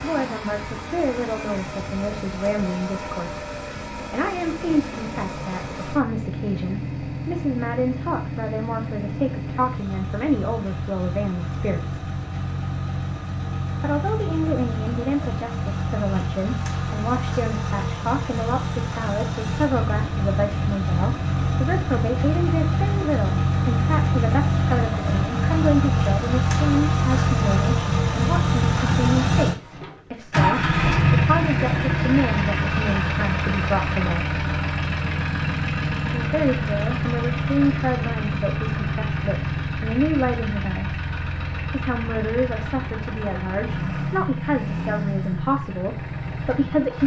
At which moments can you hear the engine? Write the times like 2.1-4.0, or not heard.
0.0-47.0.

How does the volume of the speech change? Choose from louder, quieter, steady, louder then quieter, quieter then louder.
steady.